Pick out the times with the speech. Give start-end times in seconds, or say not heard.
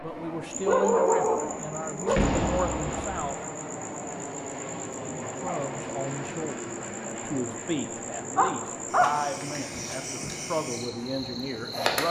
0.0-3.5, 5.3-12.0.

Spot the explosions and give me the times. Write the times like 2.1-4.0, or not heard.
2.0-3.2.